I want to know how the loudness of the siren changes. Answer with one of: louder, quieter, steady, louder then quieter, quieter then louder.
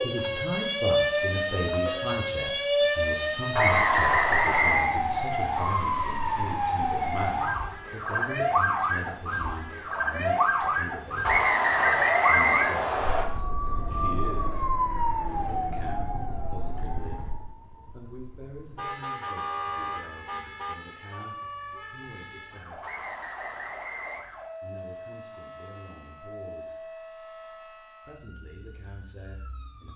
quieter.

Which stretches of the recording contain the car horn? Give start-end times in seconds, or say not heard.
18.8-20.8.